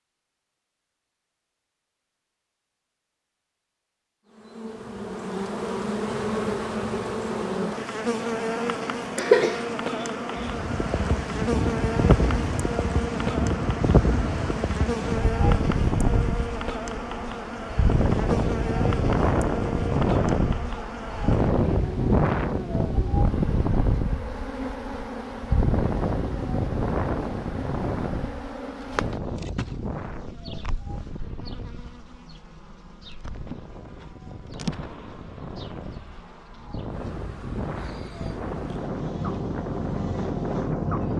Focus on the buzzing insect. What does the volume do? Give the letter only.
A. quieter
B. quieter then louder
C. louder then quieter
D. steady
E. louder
A.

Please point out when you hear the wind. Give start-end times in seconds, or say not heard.
10.3-41.1.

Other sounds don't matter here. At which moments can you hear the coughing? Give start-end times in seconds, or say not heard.
9.2-10.5.